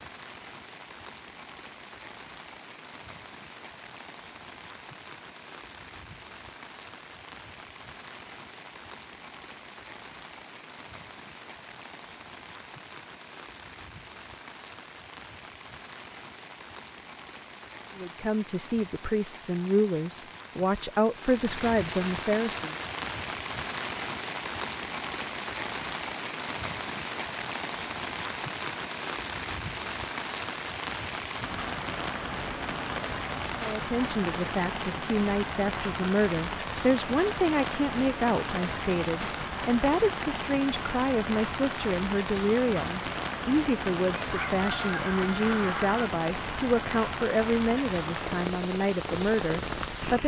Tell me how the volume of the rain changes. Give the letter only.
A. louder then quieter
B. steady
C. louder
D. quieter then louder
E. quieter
C.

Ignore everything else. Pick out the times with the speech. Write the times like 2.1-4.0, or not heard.
17.9-22.7, 33.5-50.2.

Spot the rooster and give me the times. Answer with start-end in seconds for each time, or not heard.
44.2-46.1.